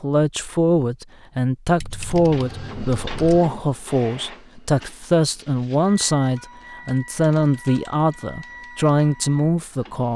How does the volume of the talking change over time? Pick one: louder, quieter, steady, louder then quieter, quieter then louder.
steady.